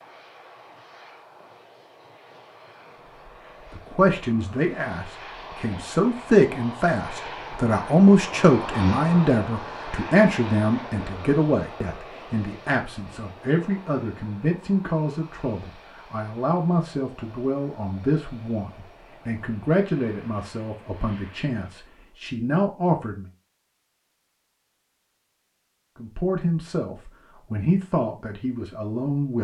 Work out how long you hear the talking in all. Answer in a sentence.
You can hear the talking for 23 seconds altogether.